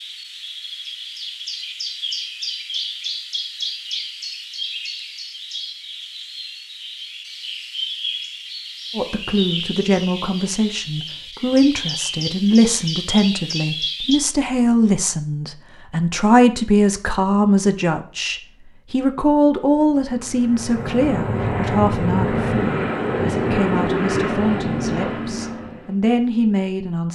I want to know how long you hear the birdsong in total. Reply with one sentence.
The birdsong can be heard for 14 seconds in total.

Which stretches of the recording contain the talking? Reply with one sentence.
The talking can be heard from 8.9 to 27.0 s.